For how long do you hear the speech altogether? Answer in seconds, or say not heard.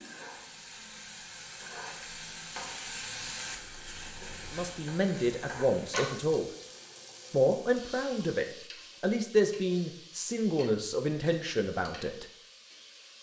7 s.